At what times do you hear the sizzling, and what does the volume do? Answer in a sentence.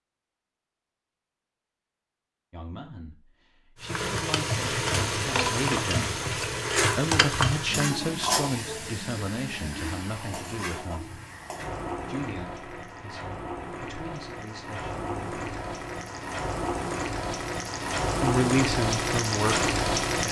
The sizzling can be heard from 3.8 to 20.2 s, getting quieter then louder.